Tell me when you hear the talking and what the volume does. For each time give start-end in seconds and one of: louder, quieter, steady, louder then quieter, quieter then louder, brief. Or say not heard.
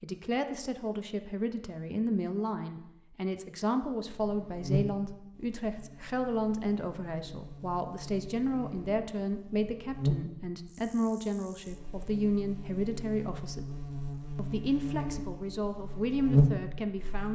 0.0-13.7 steady
14.3-17.3 brief.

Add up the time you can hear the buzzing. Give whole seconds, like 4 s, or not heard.
13 s.